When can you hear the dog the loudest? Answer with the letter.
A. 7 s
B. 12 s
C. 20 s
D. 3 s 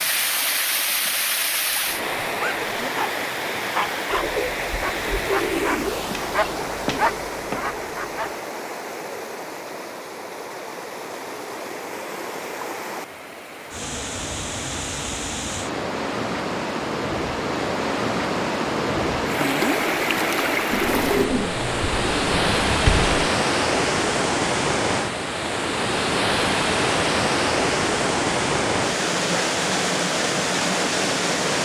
A.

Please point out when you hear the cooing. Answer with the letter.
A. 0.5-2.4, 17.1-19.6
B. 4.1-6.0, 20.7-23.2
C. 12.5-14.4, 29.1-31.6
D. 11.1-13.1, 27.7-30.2
B.